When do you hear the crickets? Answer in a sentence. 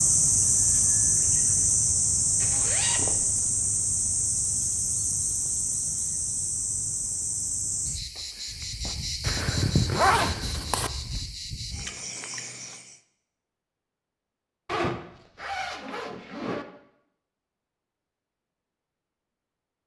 You can hear the crickets from 0.0 to 13.0 s.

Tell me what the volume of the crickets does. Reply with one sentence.
The volume of the crickets goes down.